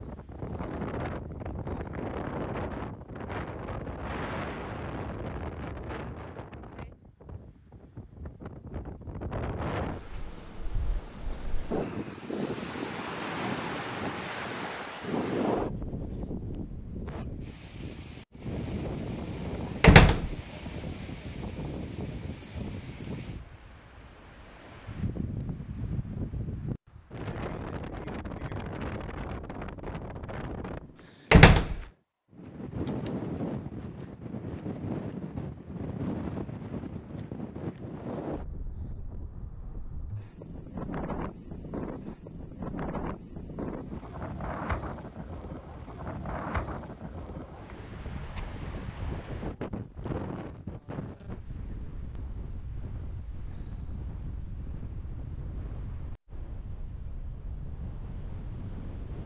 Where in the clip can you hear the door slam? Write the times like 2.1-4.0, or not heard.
19.8-20.4, 31.3-31.8.